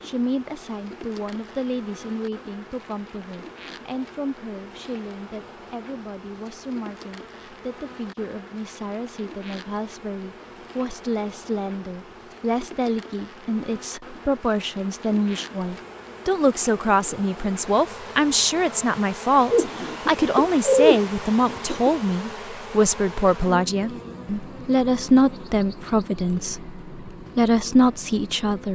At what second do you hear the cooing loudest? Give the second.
21 s.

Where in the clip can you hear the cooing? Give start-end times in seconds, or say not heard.
19.5-21.9.